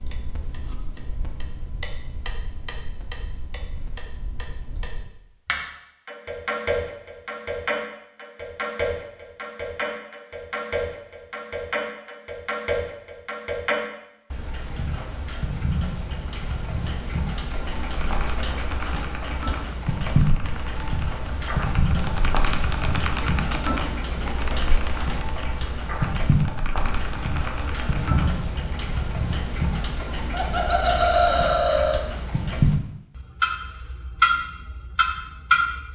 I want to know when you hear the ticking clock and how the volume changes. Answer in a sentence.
You can hear the ticking clock from 0.0 to 35.8 s, getting louder.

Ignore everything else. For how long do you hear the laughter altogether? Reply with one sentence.
The laughter can be heard for 2 seconds in total.